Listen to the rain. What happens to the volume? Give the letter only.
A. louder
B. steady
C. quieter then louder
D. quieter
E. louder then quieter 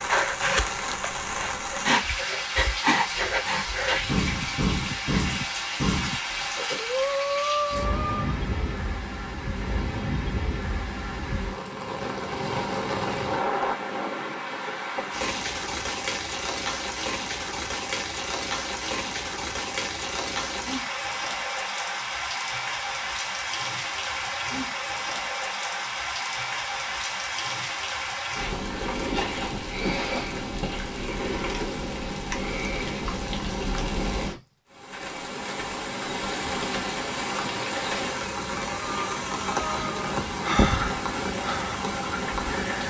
B.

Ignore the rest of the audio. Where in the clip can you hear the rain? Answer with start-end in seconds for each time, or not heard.
0.0-42.8.